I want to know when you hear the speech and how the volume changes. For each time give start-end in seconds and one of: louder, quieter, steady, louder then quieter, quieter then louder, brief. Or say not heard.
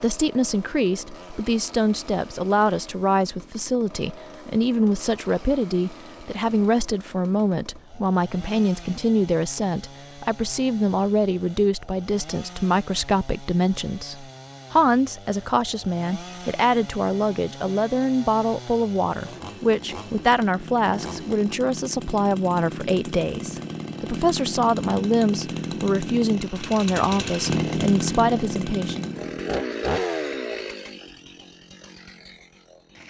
0.0-29.1 steady.